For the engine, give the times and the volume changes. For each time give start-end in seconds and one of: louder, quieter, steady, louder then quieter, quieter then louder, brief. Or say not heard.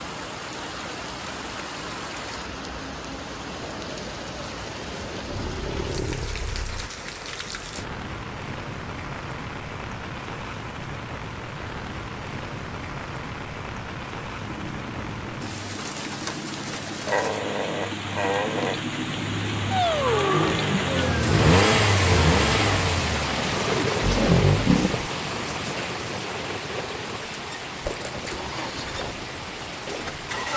14.4-30.5 louder then quieter.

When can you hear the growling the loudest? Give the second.
24 s.